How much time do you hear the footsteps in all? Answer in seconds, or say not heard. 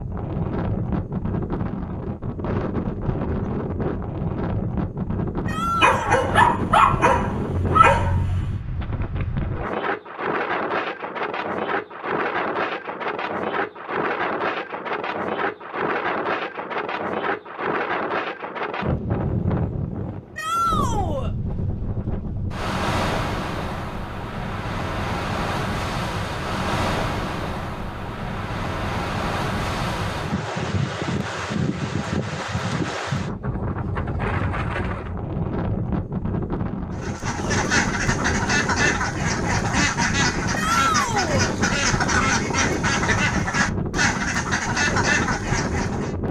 not heard.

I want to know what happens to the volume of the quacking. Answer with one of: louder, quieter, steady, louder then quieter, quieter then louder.
steady.